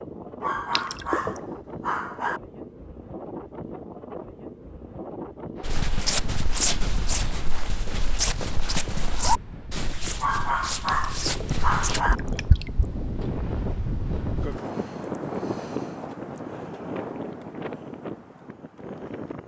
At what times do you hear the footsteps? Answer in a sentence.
You can hear the footsteps from 5.6 to 12.0 s.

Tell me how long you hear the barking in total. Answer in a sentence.
You can hear the barking for 4 seconds altogether.